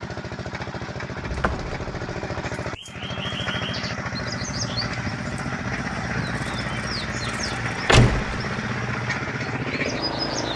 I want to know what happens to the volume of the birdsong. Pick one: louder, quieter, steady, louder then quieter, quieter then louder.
steady.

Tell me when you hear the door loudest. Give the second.
8 s.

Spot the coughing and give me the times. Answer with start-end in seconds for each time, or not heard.
not heard.